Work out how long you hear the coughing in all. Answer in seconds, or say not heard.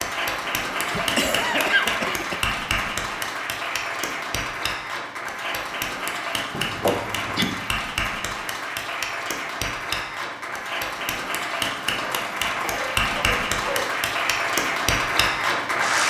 5 s.